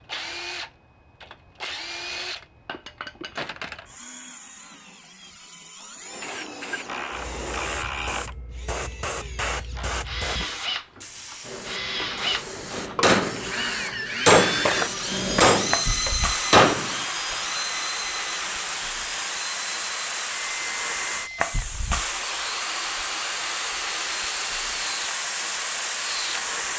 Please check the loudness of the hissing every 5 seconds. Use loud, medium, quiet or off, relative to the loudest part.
off, medium, medium, loud, loud, loud.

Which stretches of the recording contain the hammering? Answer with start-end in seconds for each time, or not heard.
12.7-13.4, 14.2-16.9.